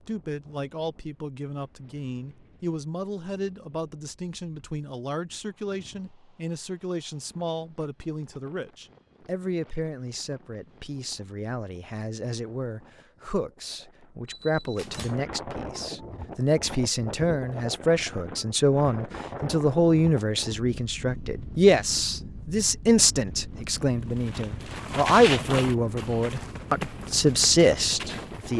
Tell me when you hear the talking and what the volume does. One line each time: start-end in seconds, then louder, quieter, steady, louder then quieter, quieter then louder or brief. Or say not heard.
0.1-28.5 louder.